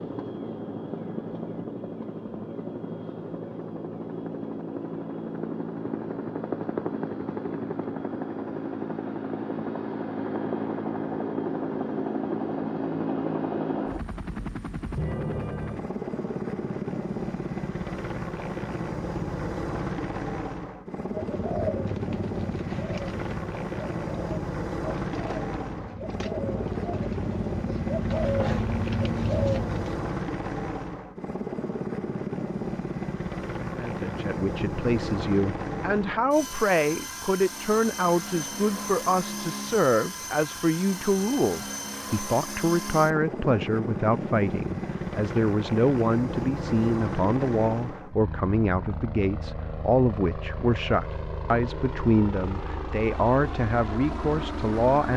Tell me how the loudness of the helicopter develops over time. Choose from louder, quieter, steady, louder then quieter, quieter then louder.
steady.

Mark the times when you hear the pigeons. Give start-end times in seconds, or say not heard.
21.1-30.1.